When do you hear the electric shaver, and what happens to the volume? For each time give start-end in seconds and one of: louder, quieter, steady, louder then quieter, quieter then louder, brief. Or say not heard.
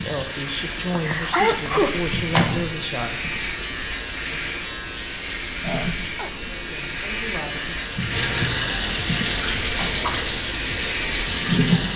0.0-11.8 steady.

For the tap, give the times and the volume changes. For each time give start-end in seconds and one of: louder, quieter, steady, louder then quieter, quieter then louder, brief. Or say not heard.
0.0-11.9 louder.